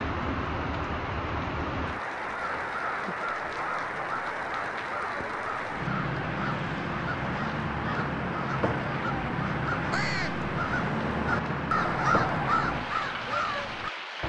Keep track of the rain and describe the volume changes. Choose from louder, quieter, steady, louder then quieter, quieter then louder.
steady.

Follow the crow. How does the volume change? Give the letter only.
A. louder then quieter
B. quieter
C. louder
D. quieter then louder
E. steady
C.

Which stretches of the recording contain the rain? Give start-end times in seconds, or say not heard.
0.0-14.2.